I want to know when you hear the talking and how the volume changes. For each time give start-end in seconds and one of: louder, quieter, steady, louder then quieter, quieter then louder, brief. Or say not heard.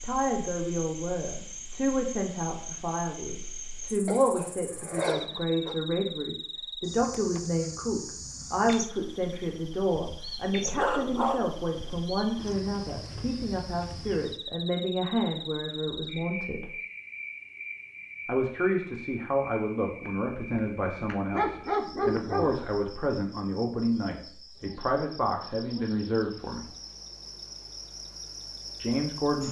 0.0-16.7 steady
18.2-26.6 steady
28.8-29.4 brief.